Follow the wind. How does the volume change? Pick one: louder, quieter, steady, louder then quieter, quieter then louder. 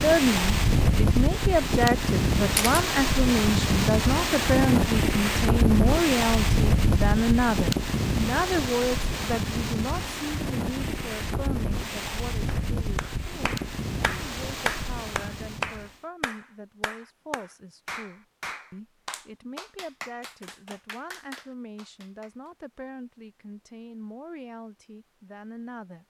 quieter.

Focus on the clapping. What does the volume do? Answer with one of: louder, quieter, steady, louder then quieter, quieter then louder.
quieter.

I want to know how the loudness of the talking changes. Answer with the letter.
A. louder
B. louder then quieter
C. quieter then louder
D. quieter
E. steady
D.